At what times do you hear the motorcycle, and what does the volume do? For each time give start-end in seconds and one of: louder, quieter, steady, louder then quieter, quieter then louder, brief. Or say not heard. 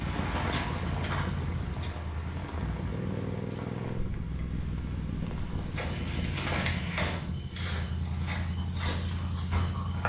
0.0-10.0 steady.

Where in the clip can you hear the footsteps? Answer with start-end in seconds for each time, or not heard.
0.0-1.9, 5.4-10.0.